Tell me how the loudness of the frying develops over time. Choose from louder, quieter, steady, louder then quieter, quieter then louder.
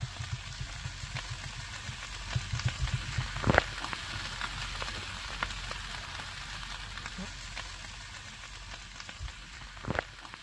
louder then quieter.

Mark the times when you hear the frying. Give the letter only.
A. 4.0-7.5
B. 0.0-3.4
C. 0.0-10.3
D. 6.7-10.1
C.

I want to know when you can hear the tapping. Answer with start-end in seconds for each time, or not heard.
0.0-3.4.